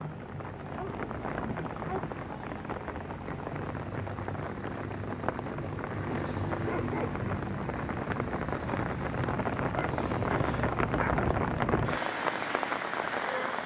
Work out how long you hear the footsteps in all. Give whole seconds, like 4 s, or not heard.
not heard.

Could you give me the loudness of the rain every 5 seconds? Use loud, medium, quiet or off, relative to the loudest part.
medium, loud, loud.